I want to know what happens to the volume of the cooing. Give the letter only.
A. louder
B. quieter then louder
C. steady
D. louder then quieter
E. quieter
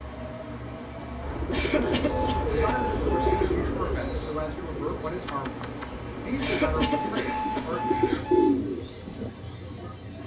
B.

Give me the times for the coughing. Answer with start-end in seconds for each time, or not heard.
1.5-2.8, 6.3-7.7.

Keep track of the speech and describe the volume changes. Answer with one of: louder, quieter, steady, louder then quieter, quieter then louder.
steady.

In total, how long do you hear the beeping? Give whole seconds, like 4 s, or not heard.
4 s.